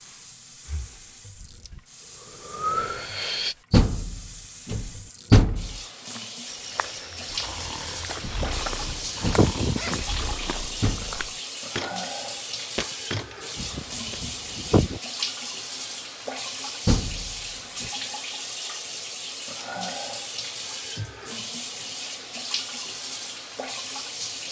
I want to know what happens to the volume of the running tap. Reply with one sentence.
The volume of the running tap goes up.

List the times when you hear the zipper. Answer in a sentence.
You can hear the zipper from 8.2 to 10.1 s and from 13.6 to 15.0 s.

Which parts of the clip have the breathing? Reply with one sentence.
You can hear the breathing from 0.0 to 3.5 s and from 7.2 to 10.8 s.